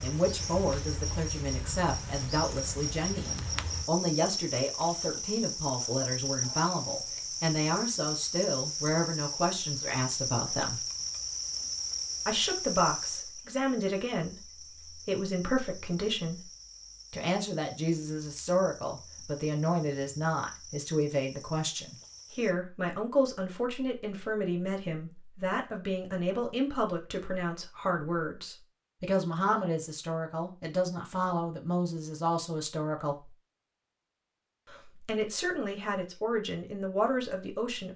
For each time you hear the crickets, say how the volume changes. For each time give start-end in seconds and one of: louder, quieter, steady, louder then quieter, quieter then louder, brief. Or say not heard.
0.0-22.6 quieter.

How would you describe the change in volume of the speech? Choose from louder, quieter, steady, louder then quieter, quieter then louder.
steady.